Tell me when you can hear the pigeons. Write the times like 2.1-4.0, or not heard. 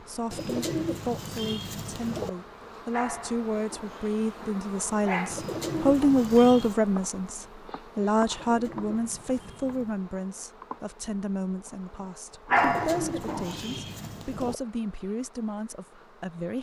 0.3-2.3, 5.3-6.8, 8.3-10.0, 12.6-14.6.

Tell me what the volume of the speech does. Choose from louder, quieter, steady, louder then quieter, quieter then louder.
louder then quieter.